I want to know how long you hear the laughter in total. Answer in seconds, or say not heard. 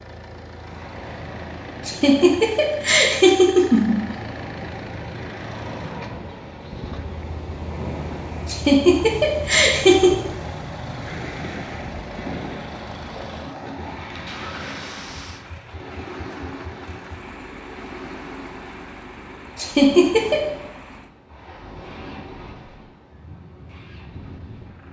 5 s.